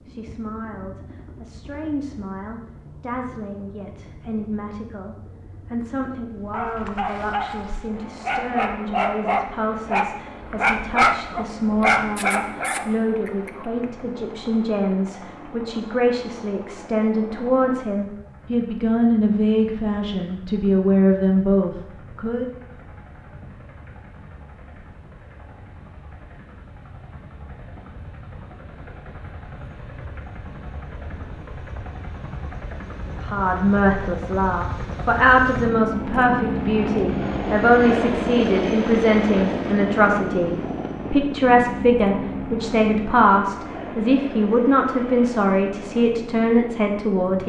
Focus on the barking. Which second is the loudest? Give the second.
11 s.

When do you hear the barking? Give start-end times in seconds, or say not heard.
6.3-13.8.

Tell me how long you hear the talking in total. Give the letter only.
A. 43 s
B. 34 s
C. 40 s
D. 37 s
D.